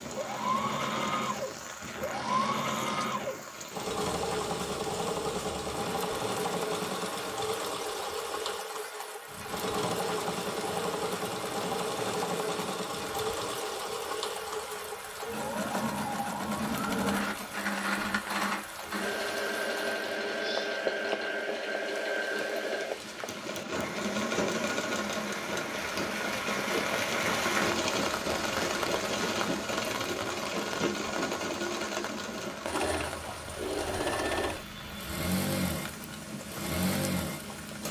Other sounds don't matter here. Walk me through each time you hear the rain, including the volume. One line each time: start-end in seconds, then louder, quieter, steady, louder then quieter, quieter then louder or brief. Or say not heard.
0.0-37.8 louder then quieter.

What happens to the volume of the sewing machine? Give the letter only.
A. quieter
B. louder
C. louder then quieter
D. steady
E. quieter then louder
D.